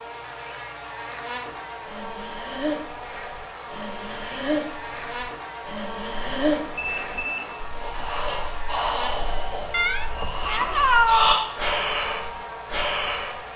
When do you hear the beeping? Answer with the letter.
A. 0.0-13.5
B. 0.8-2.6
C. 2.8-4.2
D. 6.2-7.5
D.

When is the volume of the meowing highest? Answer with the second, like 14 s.
11 s.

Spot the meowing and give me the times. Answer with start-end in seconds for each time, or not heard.
9.7-11.5.